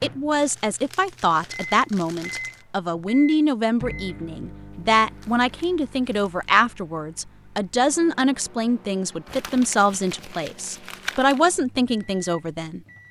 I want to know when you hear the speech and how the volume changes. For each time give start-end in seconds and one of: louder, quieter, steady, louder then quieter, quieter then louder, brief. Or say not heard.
0.0-12.8 steady.